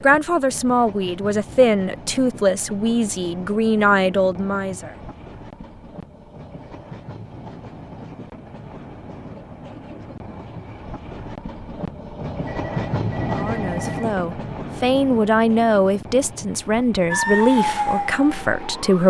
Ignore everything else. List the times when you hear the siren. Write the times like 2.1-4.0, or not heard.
17.1-19.0.